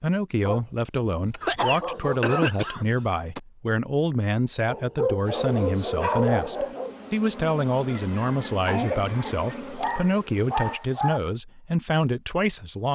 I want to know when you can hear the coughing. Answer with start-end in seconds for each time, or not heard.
1.4-3.4, 7.8-9.6.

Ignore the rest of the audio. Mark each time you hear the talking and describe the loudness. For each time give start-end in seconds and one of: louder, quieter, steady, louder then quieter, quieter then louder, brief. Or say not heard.
0.0-12.9 steady.